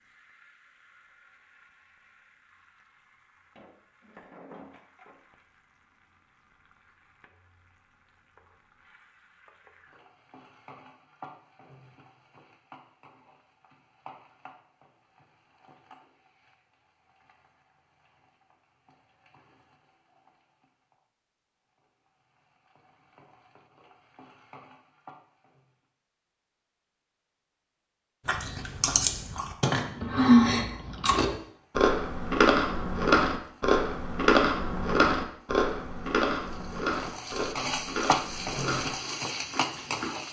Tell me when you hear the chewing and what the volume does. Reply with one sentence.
You can hear the chewing from 28.2 to 40.1 s, getting quieter.